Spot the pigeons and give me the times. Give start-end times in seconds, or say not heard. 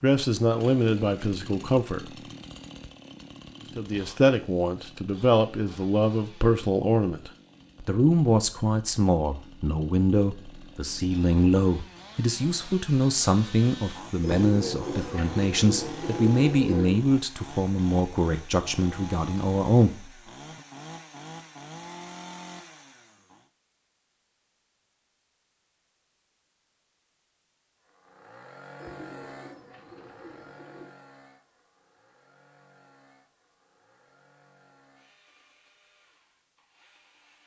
14.2-17.0, 28.8-30.9.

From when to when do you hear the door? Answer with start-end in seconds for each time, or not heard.
not heard.